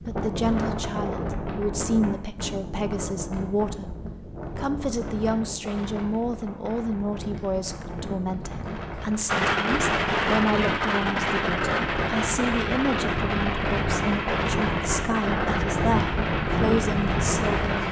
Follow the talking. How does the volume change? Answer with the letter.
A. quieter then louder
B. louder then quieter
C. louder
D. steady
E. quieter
D.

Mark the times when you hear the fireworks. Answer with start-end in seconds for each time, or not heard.
9.2-17.8.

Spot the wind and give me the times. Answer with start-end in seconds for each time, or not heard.
0.0-17.8.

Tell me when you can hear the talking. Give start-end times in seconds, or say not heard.
0.0-17.8.